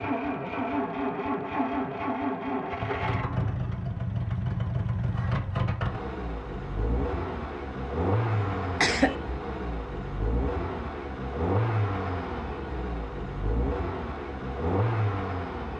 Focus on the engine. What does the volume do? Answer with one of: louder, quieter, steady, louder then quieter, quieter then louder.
steady.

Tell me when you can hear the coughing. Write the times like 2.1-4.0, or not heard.
8.3-9.2.